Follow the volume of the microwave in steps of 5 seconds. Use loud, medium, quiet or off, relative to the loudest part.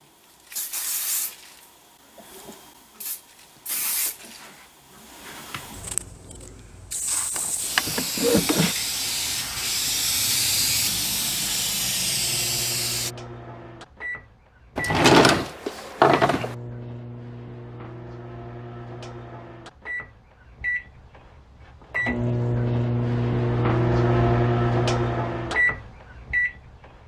off, off, quiet, quiet, loud, loud.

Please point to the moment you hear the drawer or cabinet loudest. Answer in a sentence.
The loudest moment of the drawer or cabinet is at 15 seconds.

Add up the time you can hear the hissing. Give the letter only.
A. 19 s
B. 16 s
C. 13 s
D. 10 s
C.